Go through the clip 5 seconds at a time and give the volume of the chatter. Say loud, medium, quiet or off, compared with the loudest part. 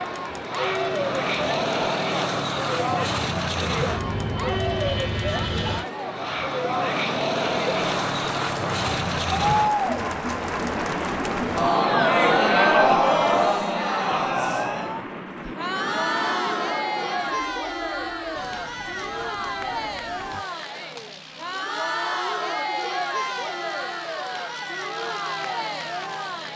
medium, medium, loud, medium, medium, medium.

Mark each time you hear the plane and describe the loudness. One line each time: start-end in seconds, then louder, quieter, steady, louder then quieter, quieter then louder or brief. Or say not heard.
0.0-26.5 quieter.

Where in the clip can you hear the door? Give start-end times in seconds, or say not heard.
not heard.